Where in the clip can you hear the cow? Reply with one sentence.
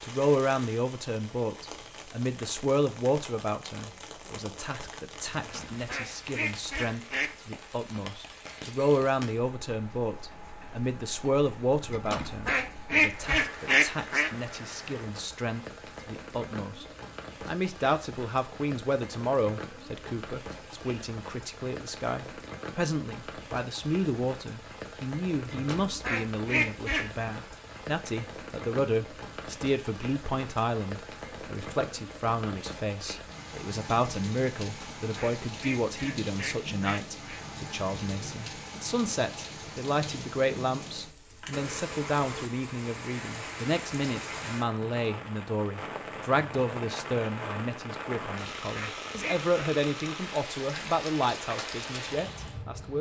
The cow can't be heard in this clip.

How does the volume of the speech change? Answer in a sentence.
The volume of the speech stays about the same.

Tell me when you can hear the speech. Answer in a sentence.
You can hear the speech from 0.0 to 16.9 s and from 17.4 to 52.9 s.